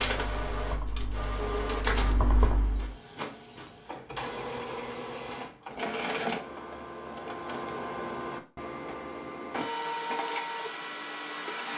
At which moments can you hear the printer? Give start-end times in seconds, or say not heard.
0.0-11.7.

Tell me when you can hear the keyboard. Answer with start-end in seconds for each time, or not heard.
0.0-3.0.